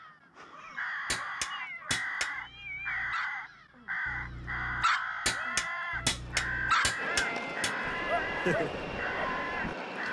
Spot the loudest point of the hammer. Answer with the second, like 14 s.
6 s.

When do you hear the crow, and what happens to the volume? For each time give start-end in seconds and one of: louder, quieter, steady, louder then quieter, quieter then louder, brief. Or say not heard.
0.0-10.0 steady.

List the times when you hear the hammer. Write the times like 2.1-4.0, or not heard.
1.1-2.3, 5.2-7.8.